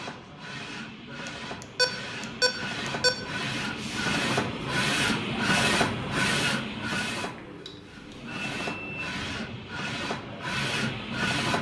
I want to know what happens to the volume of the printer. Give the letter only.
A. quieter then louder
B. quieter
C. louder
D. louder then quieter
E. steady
D.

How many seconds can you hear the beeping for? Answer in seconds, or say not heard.
4 s.